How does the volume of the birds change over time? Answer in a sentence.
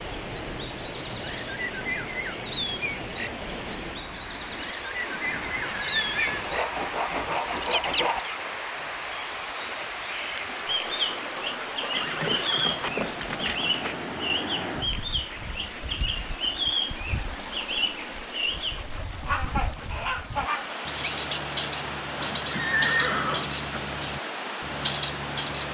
The volume of the birds stays about the same.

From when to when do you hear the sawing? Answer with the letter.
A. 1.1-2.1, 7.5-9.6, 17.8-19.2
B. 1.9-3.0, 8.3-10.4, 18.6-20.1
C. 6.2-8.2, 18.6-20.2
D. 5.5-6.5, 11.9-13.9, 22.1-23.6
C.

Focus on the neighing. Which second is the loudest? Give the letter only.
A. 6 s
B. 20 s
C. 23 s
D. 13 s
C.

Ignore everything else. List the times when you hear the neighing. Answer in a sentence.
You can hear the neighing from 5.5 to 6.5 s, from 11.9 to 13.9 s and from 22.1 to 23.6 s.